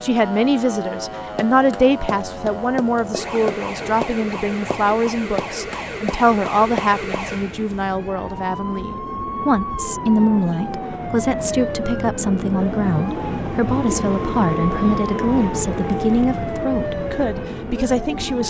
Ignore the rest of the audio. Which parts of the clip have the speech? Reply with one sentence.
You can hear the speech from 0.0 to 18.4 s.